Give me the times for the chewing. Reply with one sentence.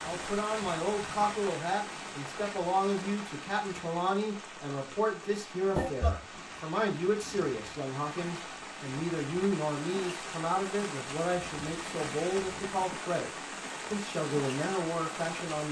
The chewing can't be heard in this clip.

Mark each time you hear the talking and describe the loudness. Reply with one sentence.
The talking can be heard from 0.0 to 13.3 s, at a steady volume; and briefly from 13.9 to 15.6 s.